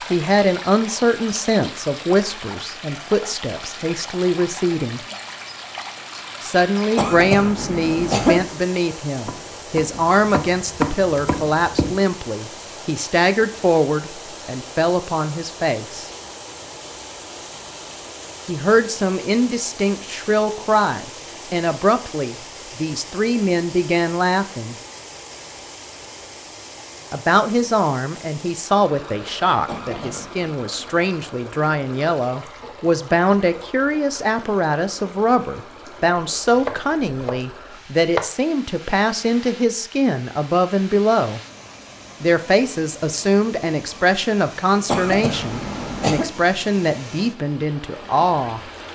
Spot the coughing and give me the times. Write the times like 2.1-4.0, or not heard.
7.0-8.4, 29.6-30.4, 44.9-46.2.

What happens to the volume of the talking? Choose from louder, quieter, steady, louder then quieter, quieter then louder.
steady.